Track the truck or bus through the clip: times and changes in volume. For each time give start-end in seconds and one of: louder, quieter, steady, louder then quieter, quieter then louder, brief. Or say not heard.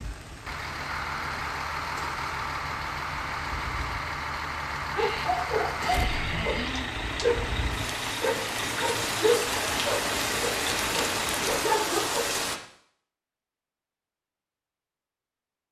0.0-11.7 steady.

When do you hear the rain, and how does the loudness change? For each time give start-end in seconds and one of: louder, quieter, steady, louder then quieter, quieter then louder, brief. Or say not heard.
0.0-12.6 louder.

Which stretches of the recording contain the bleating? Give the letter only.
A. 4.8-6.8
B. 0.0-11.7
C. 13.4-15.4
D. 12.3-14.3
A.